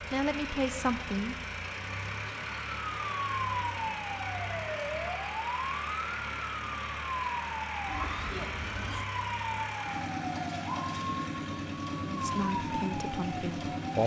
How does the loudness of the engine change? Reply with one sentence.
The loudness of the engine stays about the same.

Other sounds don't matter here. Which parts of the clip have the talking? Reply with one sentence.
You can hear the talking from 0.1 to 1.4 s and from 12.1 to 14.0 s.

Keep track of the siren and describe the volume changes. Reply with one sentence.
The volume of the siren stays about the same.